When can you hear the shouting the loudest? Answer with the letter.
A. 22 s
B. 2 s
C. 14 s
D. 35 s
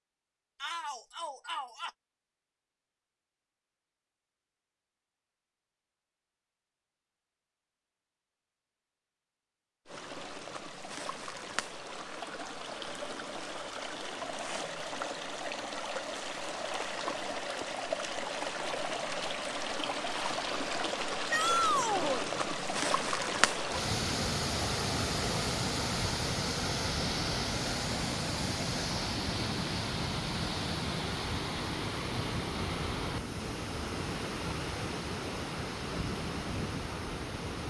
A.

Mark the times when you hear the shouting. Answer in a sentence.
The shouting can be heard from 0.6 to 1.9 s and from 21.3 to 22.2 s.